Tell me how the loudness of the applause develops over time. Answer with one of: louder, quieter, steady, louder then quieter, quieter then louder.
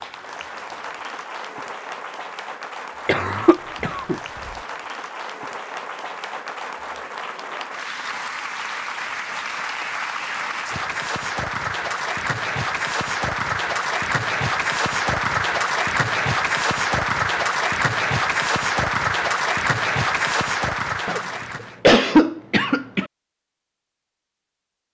louder.